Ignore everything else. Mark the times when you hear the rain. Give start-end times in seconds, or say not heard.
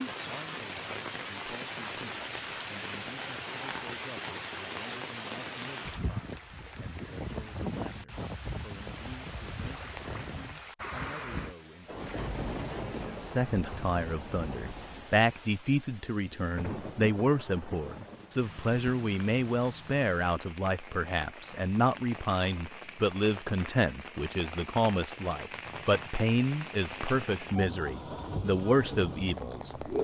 0.0-29.9.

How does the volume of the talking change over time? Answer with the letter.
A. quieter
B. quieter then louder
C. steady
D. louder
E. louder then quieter
D.